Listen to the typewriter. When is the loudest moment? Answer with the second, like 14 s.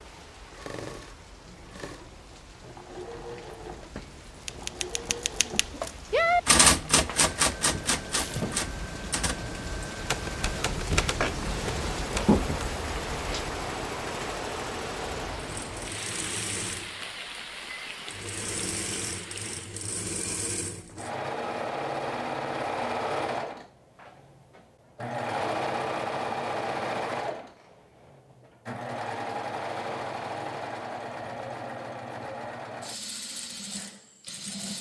7 s.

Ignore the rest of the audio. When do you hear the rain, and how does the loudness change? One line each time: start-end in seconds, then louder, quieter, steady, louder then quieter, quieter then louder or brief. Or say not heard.
0.0-19.9 louder then quieter.